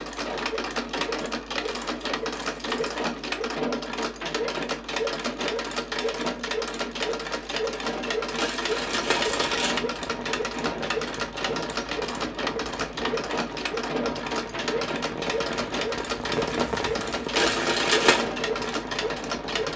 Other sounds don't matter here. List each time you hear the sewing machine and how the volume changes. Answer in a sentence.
The sewing machine can be heard from 0.0 to 19.7 s, at a steady volume.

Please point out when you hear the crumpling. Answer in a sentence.
The crumpling can be heard from 1.6 to 3.0 s, from 8.3 to 9.8 s and from 17.4 to 18.2 s.